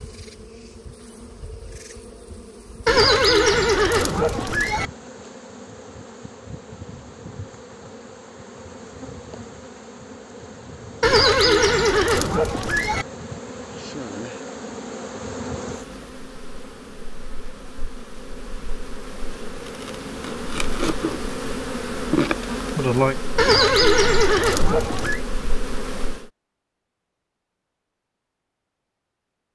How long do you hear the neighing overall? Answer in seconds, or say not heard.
6 s.